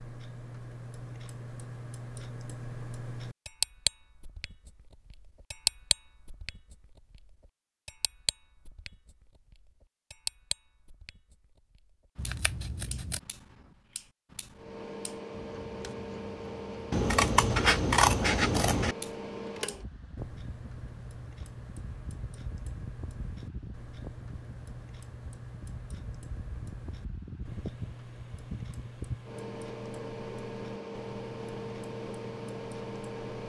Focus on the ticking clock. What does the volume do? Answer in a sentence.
The loudness of the ticking clock goes down.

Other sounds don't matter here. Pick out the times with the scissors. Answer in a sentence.
You can hear the scissors from 12.2 to 13.2 s and from 16.9 to 18.9 s.